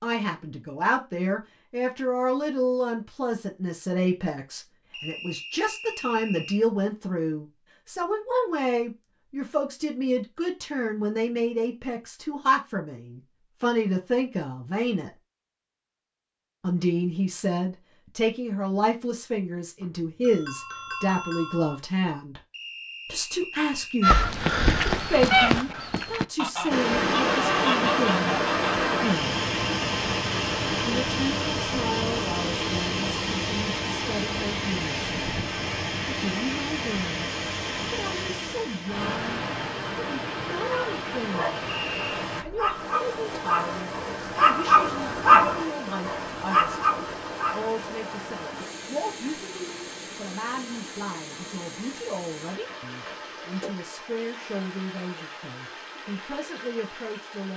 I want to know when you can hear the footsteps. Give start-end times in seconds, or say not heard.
not heard.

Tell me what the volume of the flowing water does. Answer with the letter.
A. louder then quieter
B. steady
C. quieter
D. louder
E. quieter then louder
C.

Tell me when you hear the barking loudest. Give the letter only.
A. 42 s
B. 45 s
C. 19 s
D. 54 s
B.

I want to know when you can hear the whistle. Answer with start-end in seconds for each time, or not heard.
4.9-6.7, 22.5-24.1, 41.6-42.1.